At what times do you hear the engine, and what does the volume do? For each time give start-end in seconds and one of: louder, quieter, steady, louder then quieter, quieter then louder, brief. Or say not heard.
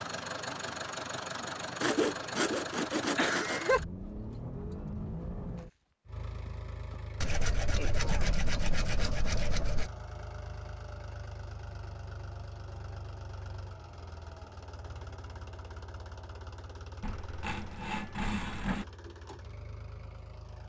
0.0-20.6 quieter.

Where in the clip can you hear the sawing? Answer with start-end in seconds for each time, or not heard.
1.8-3.8, 7.2-9.9, 17.0-18.9.